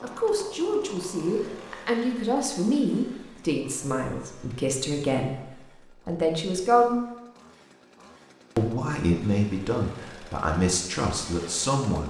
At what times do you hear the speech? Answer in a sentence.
The speech can be heard from 0.0 to 7.0 s and from 8.6 to 12.0 s.